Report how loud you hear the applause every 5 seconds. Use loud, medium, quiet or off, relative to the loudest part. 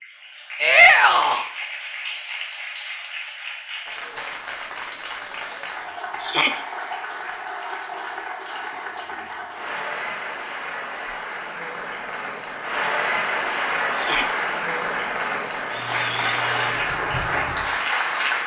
medium, medium, loud, loud.